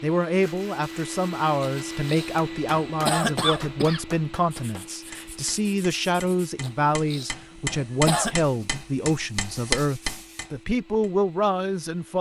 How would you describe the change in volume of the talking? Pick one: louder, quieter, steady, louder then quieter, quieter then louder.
steady.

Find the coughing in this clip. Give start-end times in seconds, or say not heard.
1.6-4.0, 6.6-8.4.